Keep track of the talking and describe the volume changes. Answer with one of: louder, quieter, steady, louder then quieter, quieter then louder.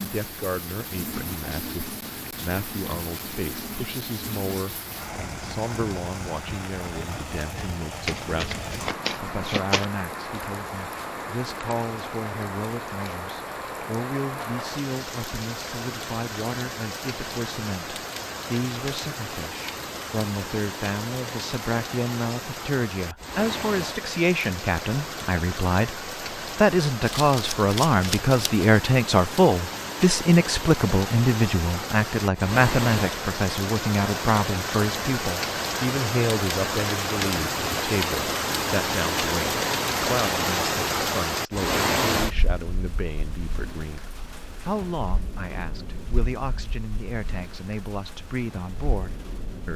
louder then quieter.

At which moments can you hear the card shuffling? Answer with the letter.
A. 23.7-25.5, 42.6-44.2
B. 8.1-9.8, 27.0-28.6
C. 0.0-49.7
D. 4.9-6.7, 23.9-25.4
B.